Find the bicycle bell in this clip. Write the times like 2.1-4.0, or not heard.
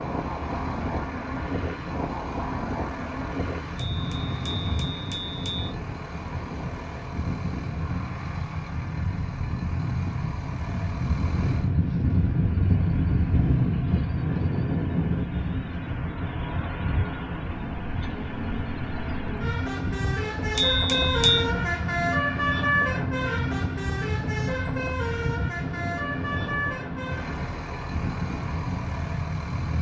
3.8-5.7, 20.6-21.4.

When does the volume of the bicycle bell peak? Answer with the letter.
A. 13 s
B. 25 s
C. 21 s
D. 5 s
C.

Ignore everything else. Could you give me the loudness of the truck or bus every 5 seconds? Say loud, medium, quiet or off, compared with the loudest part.
quiet, quiet, quiet, medium, loud, medium.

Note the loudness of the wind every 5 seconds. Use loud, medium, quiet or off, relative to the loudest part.
medium, medium, loud, medium, medium, medium.